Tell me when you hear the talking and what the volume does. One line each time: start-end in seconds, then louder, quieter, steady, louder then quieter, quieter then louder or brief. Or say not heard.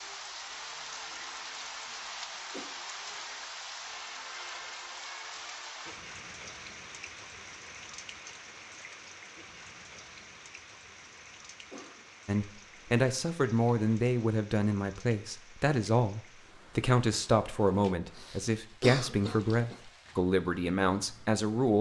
12.2-21.7 steady.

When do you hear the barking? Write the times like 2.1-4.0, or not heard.
not heard.